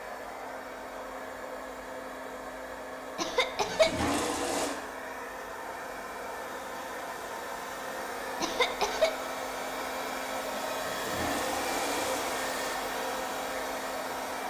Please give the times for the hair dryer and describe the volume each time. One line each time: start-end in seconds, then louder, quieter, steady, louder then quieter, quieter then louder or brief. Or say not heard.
0.0-14.4 louder.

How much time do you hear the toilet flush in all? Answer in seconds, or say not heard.
3 s.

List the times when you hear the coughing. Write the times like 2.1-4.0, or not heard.
3.1-4.0, 8.4-9.1.